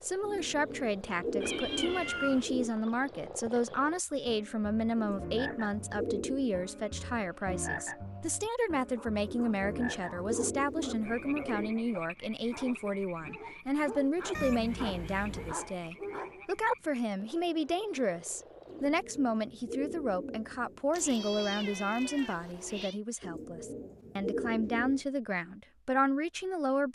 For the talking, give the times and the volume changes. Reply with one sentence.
The talking can be heard from 0.0 to 26.9 s, at a steady volume.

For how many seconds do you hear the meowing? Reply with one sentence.
You can hear the meowing for 4 seconds altogether.